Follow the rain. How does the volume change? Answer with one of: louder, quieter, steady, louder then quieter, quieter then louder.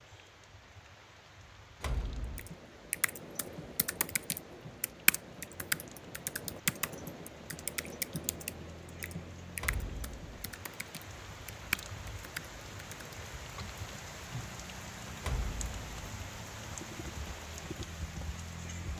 louder.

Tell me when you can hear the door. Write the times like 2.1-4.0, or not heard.
1.8-2.5, 9.6-10.7, 15.2-16.1.